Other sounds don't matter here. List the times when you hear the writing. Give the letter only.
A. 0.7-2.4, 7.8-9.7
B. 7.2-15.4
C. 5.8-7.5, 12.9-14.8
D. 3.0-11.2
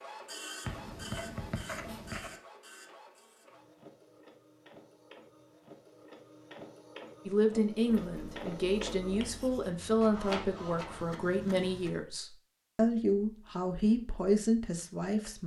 A.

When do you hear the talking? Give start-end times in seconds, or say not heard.
7.2-15.4.